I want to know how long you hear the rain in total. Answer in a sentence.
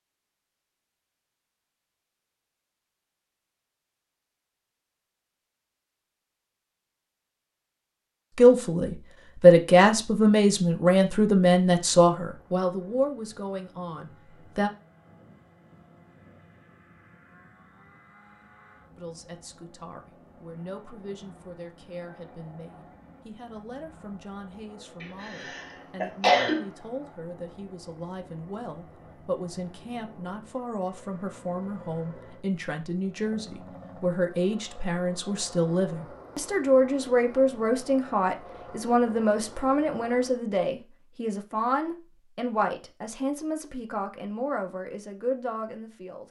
The rain can't be heard in this clip.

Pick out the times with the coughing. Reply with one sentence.
The coughing can be heard from 25.0 to 26.6 s.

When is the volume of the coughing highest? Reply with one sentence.
The volume of the coughing peaks at 26 seconds.